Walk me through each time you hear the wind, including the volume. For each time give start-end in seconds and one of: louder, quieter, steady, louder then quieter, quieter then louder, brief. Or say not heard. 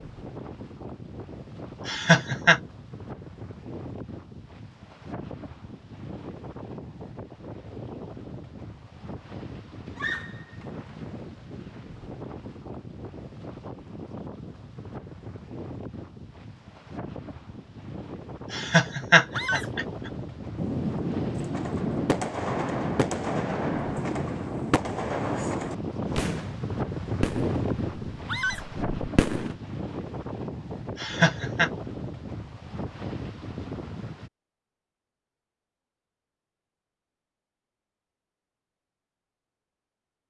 0.0-34.3 louder.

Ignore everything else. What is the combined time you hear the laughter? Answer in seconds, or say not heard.
3 s.